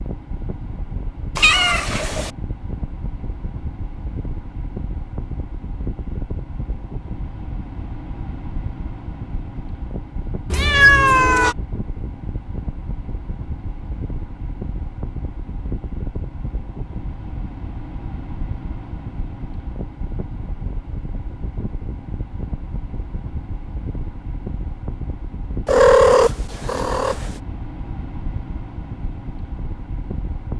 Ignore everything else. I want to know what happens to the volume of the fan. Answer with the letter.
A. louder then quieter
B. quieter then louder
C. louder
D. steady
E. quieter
D.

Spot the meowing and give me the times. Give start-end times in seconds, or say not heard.
1.4-2.3, 10.5-11.6, 25.6-27.3.